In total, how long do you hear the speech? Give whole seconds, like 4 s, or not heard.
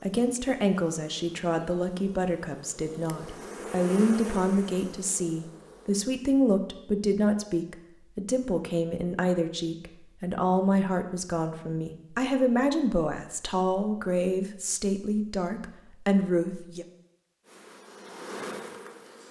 17 s.